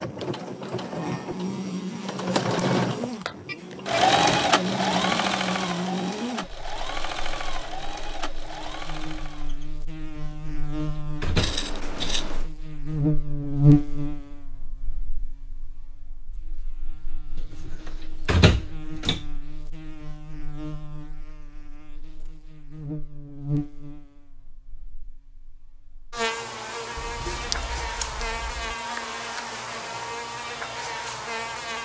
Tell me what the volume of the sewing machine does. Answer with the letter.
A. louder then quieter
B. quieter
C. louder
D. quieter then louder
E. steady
A.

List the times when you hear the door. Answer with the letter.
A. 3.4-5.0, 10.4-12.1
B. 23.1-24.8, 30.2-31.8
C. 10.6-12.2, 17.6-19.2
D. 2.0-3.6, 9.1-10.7
C.